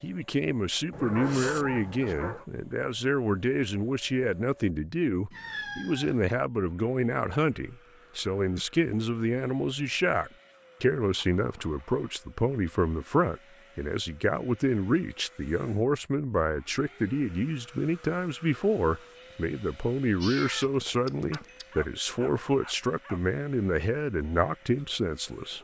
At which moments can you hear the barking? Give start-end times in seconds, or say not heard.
0.9-2.5, 21.3-23.2.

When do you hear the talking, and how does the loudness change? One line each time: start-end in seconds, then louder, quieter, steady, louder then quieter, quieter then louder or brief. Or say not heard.
0.0-25.5 steady.